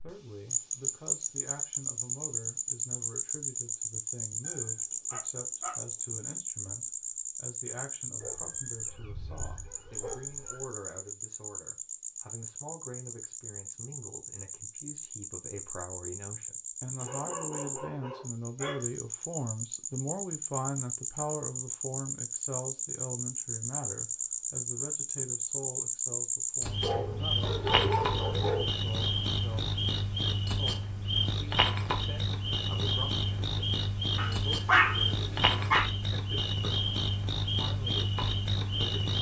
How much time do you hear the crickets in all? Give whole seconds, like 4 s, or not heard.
39 s.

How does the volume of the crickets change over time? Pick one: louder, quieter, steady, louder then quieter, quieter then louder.
quieter then louder.